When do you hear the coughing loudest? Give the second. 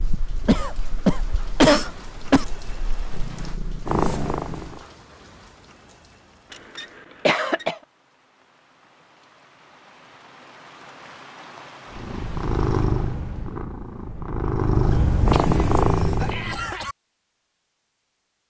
2 s.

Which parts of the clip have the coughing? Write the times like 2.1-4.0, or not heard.
0.5-2.5, 6.5-7.8, 14.9-16.9.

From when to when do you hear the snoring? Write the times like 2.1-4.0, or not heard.
not heard.